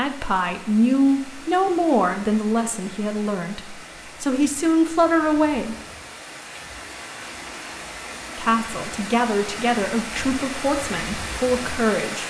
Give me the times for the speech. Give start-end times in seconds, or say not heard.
0.0-5.8, 8.3-12.2.